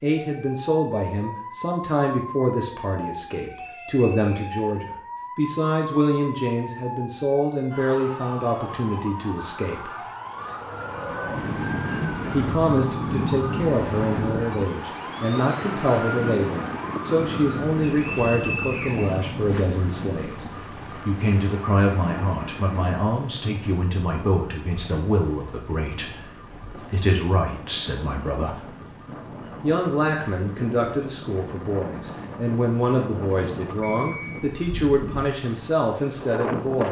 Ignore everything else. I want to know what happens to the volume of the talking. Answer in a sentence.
The loudness of the talking stays about the same.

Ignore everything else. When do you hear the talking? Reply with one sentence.
The talking can be heard from 0.0 to 9.9 s, from 12.3 to 28.6 s and from 29.6 to 36.8 s.